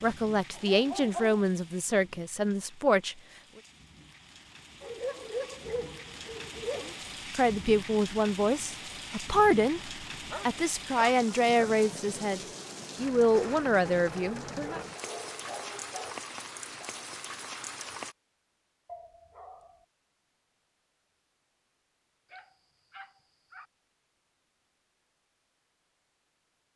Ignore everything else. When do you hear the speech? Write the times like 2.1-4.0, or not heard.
0.0-3.1, 6.8-14.8.